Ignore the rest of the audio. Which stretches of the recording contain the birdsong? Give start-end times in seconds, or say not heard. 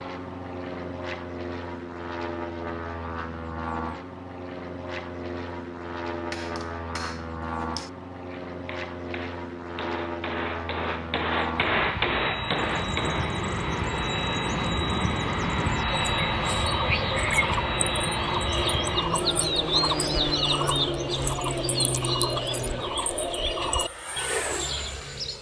12.3-25.3.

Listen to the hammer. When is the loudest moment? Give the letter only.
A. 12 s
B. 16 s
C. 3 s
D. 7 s
A.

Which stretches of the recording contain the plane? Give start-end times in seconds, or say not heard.
0.0-25.3.